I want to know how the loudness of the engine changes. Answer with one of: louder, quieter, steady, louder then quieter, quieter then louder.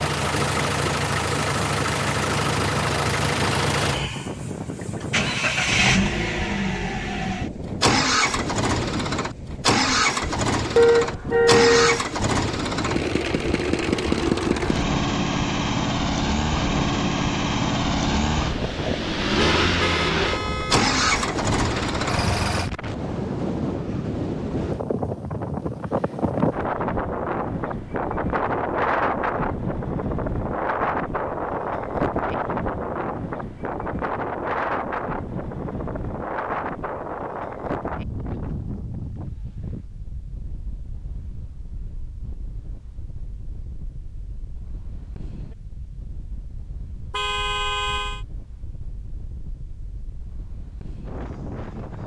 steady.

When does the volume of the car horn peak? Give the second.
11 s.